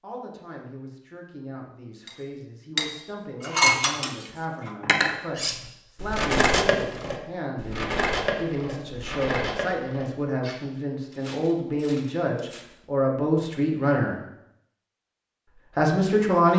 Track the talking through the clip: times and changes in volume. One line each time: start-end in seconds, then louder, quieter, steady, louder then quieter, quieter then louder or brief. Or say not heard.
0.0-14.2 louder
15.8-16.5 brief.